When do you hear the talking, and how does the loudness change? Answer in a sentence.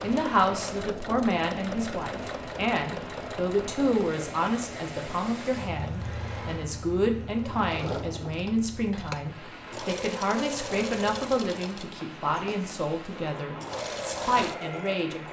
The talking can be heard from 0.0 to 15.2 s, at a steady volume.